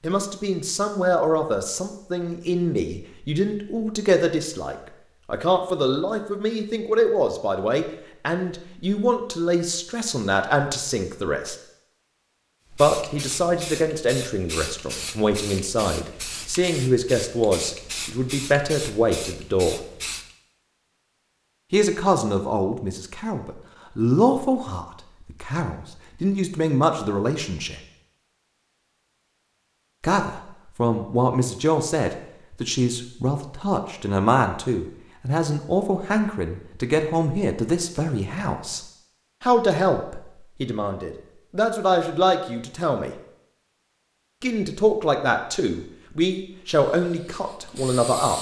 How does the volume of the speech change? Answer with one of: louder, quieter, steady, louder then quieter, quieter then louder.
steady.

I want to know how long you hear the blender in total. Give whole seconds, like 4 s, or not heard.
not heard.